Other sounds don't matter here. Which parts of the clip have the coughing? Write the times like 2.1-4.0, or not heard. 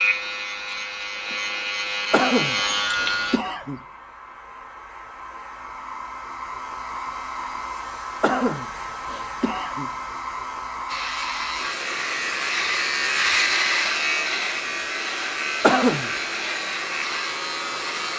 2.1-3.8, 8.2-9.9, 15.6-16.1.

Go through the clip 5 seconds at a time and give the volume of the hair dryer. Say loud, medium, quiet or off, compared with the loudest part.
medium, loud, loud, loud.